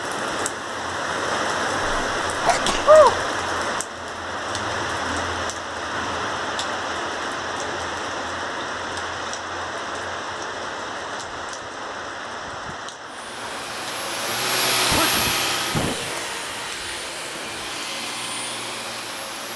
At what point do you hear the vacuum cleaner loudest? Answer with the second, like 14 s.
15 s.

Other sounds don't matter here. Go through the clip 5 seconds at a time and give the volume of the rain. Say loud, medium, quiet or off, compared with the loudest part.
loud, loud, medium, quiet.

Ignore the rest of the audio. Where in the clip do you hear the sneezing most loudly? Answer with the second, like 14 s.
3 s.